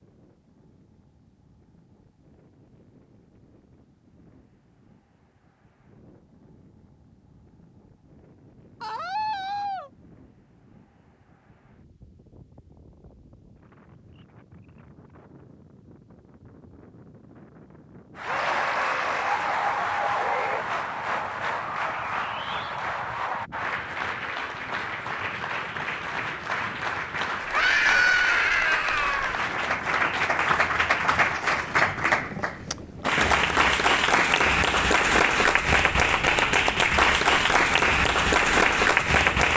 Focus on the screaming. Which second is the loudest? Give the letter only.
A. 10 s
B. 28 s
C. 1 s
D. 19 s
B.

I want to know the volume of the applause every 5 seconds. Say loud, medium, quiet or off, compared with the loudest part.
off, off, off, medium, medium, medium, loud, loud.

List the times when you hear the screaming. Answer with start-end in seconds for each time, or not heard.
8.8-9.9, 18.2-19.4, 27.5-29.4.